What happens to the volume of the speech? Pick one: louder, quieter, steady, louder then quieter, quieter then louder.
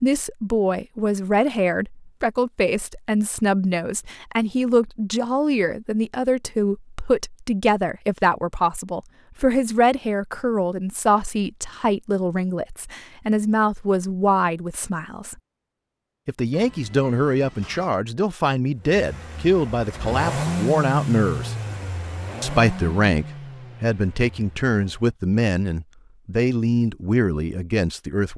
steady.